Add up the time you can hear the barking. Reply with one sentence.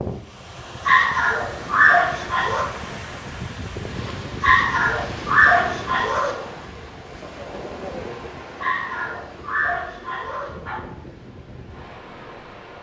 You can hear the barking for 6 seconds altogether.